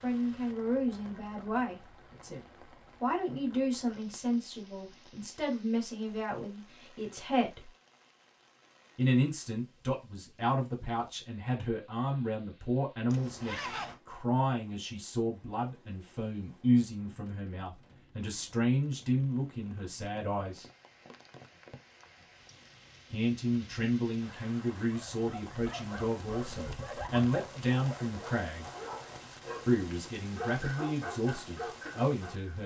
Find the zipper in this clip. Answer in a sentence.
The zipper can be heard from 13.1 to 14.0 s and from 27.7 to 29.2 s.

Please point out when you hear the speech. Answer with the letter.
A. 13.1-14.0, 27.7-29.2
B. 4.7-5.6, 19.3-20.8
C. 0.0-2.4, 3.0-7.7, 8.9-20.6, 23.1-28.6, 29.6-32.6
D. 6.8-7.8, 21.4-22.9
C.